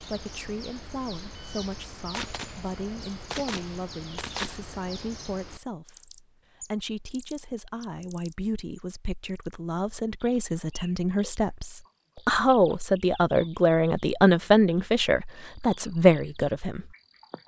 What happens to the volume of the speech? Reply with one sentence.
The loudness of the speech goes up.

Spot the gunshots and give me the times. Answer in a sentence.
The gunshots can be heard from 1.4 to 4.6 s.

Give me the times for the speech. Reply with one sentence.
The speech can be heard from 0.0 to 16.9 s.